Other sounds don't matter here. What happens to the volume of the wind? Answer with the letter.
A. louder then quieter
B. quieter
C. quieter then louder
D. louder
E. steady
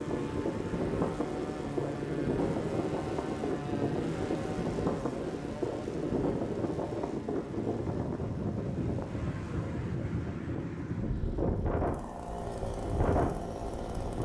E.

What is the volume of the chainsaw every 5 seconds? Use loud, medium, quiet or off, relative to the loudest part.
loud, medium, loud.